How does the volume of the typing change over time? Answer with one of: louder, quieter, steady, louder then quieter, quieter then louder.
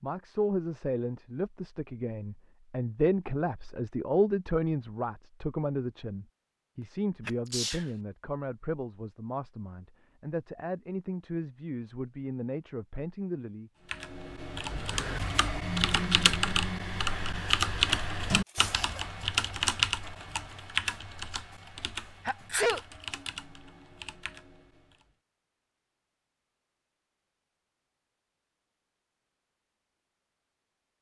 quieter.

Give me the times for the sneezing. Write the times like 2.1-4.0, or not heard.
6.8-7.9, 18.4-19.0, 22.2-22.8.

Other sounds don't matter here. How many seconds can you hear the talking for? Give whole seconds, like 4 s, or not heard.
14 s.